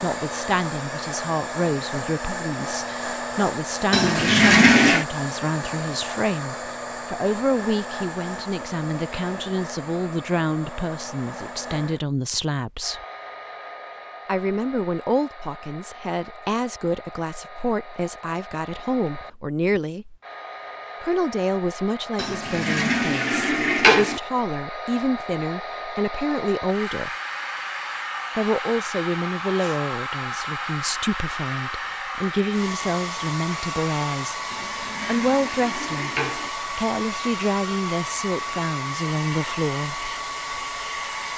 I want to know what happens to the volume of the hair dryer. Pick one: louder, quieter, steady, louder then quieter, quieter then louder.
quieter then louder.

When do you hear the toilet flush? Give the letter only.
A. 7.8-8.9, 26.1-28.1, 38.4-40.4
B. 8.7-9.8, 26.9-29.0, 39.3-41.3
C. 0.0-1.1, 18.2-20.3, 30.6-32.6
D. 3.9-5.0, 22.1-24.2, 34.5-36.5
D.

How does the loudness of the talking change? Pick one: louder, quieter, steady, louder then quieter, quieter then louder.
steady.